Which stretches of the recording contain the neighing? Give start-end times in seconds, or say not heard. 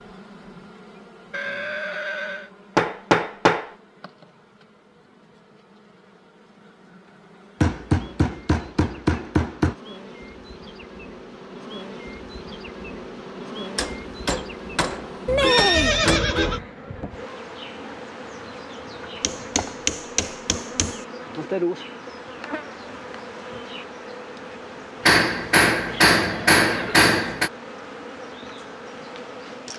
1.3-2.5, 15.2-16.6, 26.1-27.1.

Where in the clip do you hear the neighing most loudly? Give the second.
16 s.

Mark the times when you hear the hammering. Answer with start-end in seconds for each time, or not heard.
2.8-3.7, 7.6-9.8, 13.8-16.2, 19.2-20.9, 25.1-27.5.